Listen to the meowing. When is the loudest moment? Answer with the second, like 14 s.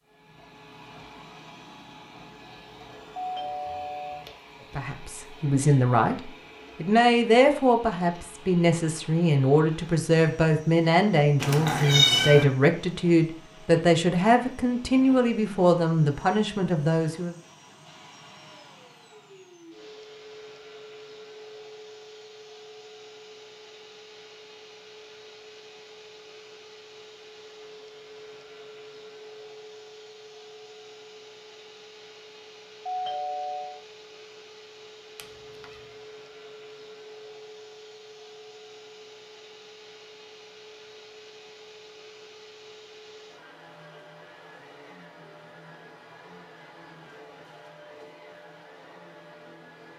12 s.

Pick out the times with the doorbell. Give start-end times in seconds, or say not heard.
3.1-4.2, 32.9-33.8.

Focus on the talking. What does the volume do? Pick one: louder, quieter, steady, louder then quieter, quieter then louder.
steady.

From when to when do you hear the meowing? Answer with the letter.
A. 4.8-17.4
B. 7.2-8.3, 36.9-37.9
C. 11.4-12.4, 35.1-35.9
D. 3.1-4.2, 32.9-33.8
C.